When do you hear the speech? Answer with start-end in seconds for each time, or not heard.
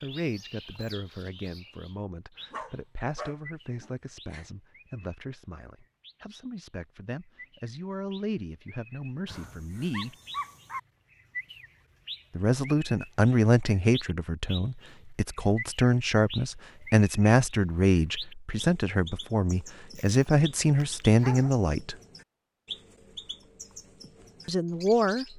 0.0-10.2, 12.3-21.9, 24.4-25.2.